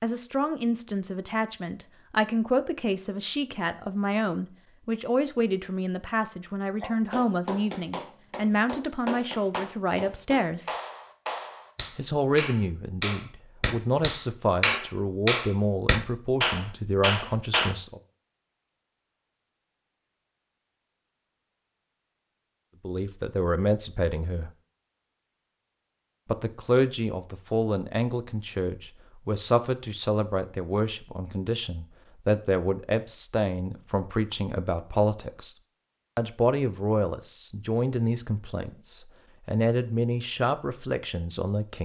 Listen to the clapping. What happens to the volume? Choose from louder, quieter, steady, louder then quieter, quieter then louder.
louder.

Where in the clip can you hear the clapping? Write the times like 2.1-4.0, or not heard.
6.8-17.7.